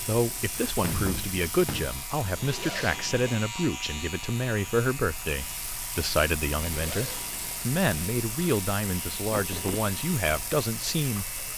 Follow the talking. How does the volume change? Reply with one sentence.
The volume of the talking stays about the same.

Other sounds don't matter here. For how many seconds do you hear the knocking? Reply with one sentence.
You can hear the knocking for 2 seconds altogether.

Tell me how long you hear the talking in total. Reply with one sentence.
The talking can be heard for 11 seconds in total.